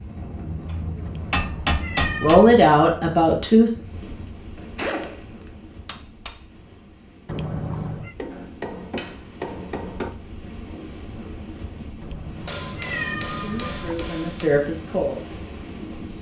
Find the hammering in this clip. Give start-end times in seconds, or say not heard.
0.5-2.5, 4.5-5.2, 5.8-6.3, 8.2-10.1, 12.4-14.5.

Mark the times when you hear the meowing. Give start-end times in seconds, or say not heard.
1.1-2.5, 7.2-8.2, 12.0-14.1.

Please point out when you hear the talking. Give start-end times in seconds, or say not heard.
2.2-3.7, 13.4-15.2.